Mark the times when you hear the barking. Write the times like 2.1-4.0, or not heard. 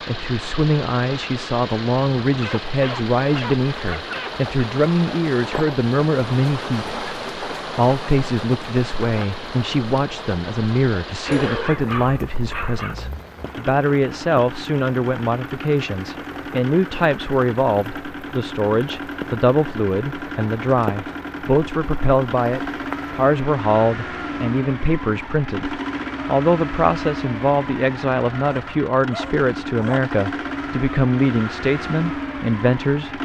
2.4-4.5, 11.2-12.9, 28.4-30.1.